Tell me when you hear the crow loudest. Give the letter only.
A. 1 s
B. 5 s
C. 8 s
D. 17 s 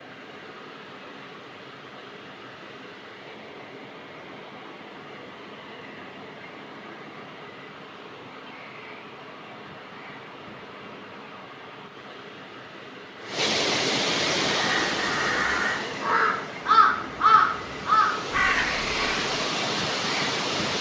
D.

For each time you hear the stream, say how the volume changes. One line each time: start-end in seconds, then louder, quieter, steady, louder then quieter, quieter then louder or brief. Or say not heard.
0.0-20.7 louder.